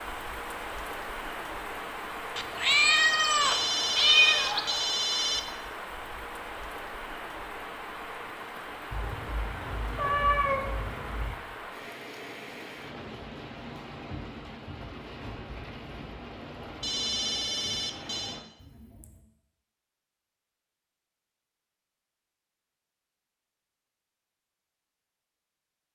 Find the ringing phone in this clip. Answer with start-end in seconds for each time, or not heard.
3.4-5.4, 16.8-18.4.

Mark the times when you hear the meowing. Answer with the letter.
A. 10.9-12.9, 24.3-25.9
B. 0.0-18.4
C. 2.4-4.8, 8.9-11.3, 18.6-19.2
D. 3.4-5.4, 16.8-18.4
C.